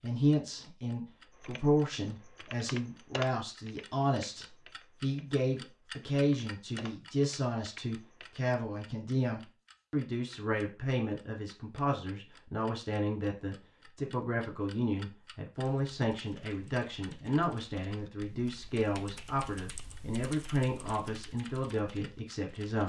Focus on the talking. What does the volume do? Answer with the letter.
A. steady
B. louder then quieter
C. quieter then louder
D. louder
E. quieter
A.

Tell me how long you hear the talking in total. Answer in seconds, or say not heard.
23 s.